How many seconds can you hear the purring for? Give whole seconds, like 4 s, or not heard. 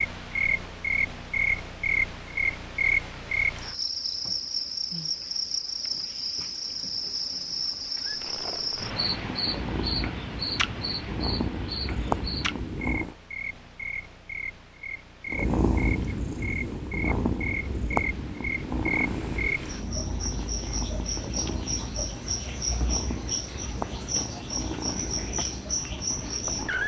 17 s.